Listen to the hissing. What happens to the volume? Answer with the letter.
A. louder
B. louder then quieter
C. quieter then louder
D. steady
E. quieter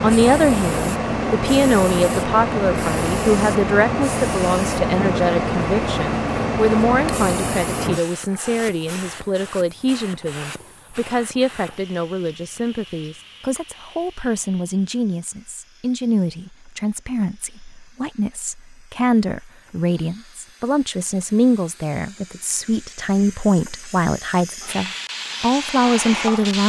C.